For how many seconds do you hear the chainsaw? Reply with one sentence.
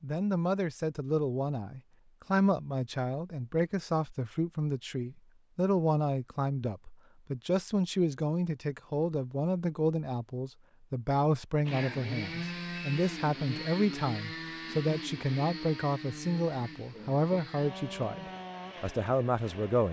You can hear the chainsaw for 8 seconds altogether.